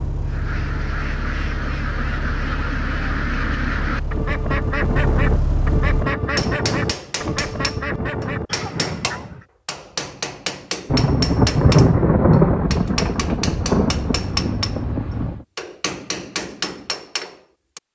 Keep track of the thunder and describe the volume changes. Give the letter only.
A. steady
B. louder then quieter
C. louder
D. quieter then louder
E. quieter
E.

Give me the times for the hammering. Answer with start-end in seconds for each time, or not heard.
6.2-17.8.